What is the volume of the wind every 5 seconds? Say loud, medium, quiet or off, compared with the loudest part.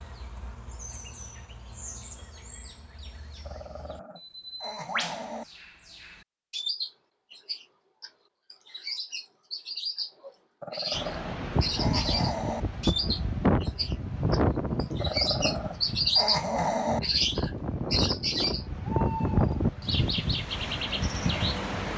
off, off, loud, loud, loud.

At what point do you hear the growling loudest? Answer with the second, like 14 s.
17 s.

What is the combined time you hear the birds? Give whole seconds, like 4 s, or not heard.
22 s.